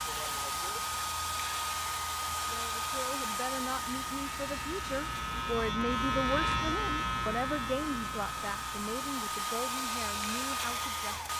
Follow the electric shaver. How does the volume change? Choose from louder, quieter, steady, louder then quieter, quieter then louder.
louder then quieter.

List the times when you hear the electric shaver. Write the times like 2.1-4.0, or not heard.
0.0-11.3.